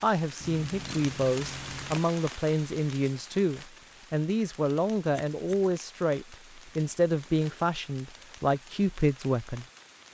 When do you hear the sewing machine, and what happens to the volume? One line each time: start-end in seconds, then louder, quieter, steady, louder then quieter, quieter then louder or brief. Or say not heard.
not heard.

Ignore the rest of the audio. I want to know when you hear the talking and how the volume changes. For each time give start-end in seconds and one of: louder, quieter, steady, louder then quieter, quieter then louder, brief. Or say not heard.
0.0-9.7 steady.